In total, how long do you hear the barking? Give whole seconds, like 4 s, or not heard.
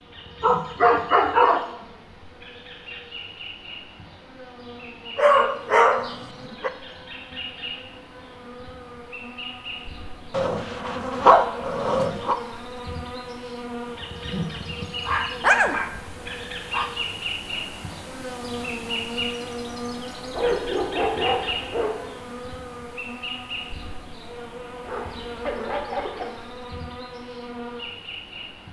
10 s.